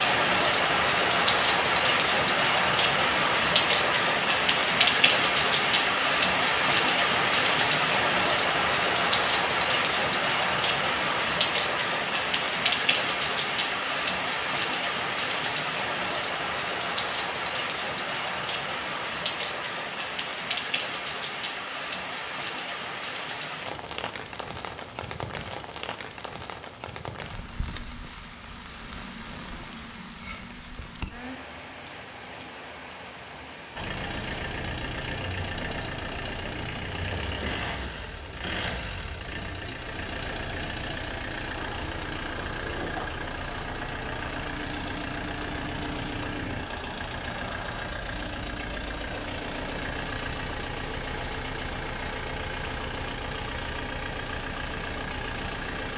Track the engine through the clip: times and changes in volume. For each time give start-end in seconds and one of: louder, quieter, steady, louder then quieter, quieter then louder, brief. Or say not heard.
33.8-55.9 steady.